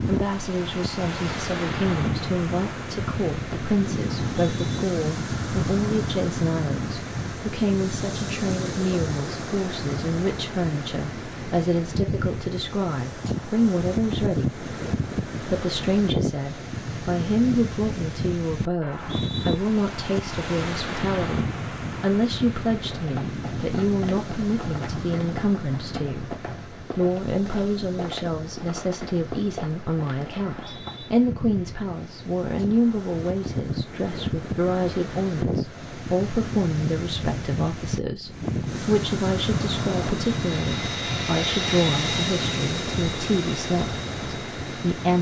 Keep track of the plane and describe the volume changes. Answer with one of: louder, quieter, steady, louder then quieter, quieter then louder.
louder then quieter.